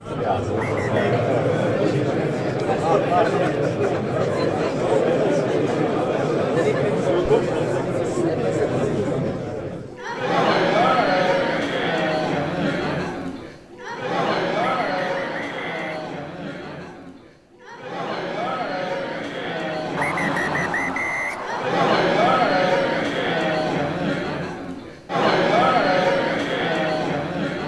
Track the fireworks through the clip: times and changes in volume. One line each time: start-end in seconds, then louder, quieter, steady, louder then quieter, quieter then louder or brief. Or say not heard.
not heard.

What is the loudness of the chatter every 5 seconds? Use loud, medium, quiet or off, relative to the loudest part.
loud, loud, loud, medium, loud, loud.